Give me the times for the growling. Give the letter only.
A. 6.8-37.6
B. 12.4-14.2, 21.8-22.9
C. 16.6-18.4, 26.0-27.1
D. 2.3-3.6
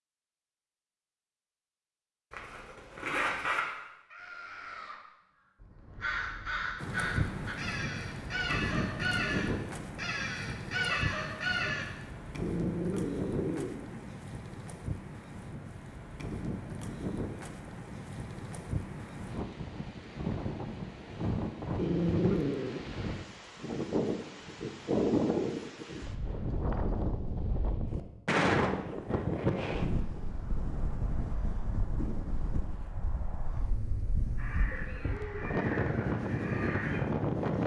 B.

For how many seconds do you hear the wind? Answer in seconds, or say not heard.
31 s.